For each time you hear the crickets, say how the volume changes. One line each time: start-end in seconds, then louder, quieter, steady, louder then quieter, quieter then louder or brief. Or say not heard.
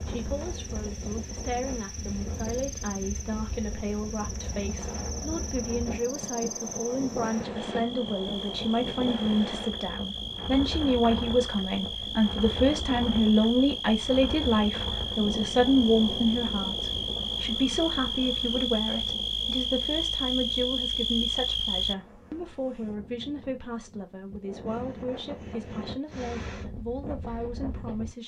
0.0-21.9 louder.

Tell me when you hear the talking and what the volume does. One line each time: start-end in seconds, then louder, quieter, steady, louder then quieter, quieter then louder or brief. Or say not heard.
0.0-28.2 louder then quieter.